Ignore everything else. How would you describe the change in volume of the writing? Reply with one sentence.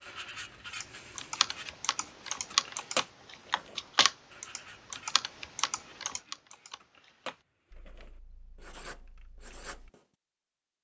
The volume of the writing goes up, then down.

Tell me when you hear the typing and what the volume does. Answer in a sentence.
The typing can be heard from 0.8 to 9.9 s, getting quieter.